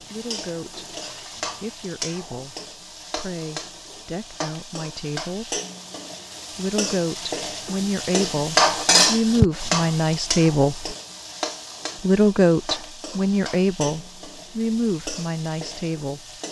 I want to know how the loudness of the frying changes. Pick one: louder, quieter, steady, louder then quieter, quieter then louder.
louder then quieter.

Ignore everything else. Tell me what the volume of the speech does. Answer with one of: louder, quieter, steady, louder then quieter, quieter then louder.
louder then quieter.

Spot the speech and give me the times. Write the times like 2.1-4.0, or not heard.
0.0-5.6, 6.5-10.9, 12.0-16.3.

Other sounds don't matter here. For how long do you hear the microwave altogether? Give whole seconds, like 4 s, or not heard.
not heard.